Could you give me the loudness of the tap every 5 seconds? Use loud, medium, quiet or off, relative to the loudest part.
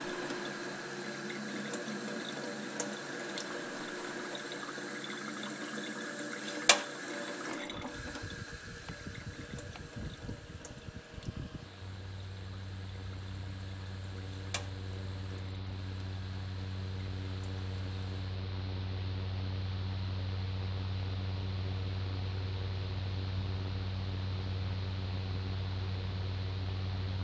loud, loud, quiet, quiet, off, off.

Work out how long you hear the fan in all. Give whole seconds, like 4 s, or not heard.
27 s.